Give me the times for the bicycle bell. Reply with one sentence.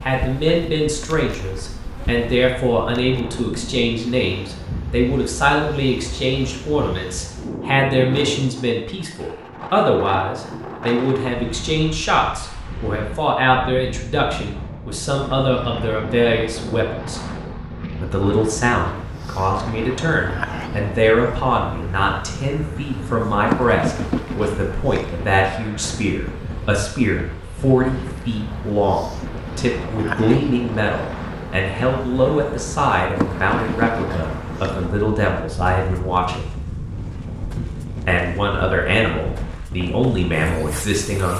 The bicycle bell can't be heard in this clip.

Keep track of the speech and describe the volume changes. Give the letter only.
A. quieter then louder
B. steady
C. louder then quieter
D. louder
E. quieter
B.